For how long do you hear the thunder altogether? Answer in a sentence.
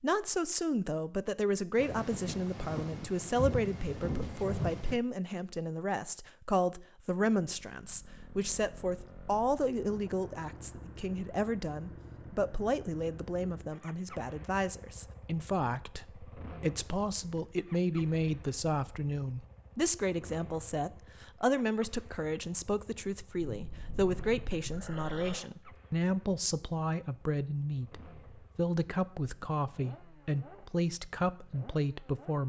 The thunder can be heard for 5 seconds in total.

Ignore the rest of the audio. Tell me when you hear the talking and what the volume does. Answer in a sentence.
You can hear the talking from 0.0 to 32.4 s, at a steady volume.